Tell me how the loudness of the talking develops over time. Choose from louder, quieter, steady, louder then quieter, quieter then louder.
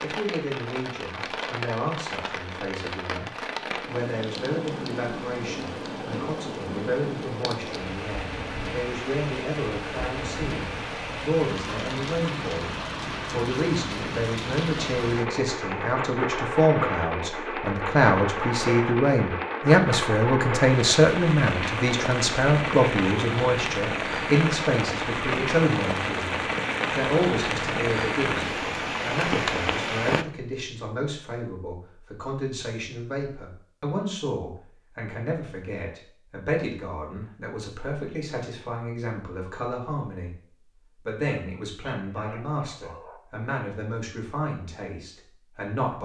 louder then quieter.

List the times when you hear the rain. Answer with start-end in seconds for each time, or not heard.
0.0-30.2.